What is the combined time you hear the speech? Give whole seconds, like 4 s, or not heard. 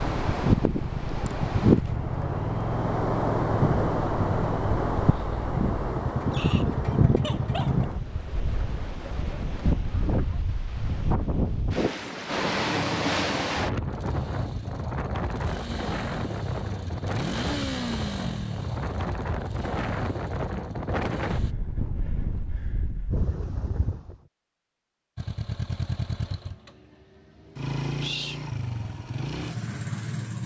not heard.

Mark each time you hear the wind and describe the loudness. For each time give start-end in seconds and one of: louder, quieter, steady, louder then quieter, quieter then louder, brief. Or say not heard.
0.0-24.1 quieter.